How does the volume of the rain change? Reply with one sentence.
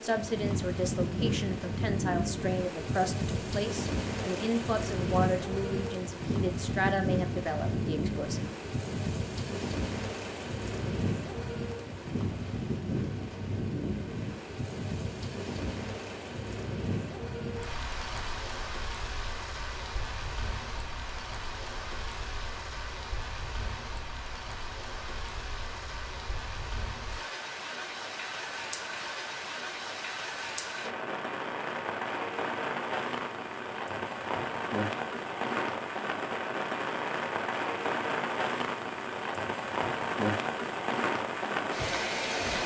The loudness of the rain goes down, then up.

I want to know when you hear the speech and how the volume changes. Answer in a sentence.
The speech can be heard from 0.0 to 8.4 s, at a steady volume.